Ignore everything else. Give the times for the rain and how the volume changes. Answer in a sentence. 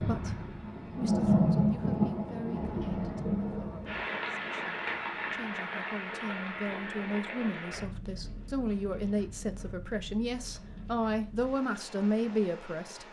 You can hear the rain from 0.0 to 13.0 s, getting quieter.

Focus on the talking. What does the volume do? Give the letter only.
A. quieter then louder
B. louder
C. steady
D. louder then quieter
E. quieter
B.